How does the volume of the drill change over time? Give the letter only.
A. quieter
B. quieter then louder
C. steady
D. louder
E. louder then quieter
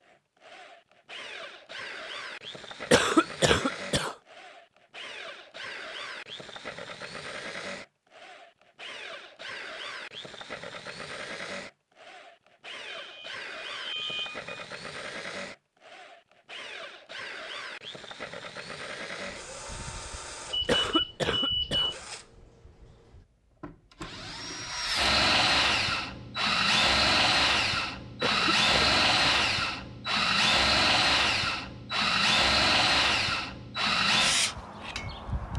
D.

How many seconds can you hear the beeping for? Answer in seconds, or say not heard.
3 s.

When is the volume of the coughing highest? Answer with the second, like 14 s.
3 s.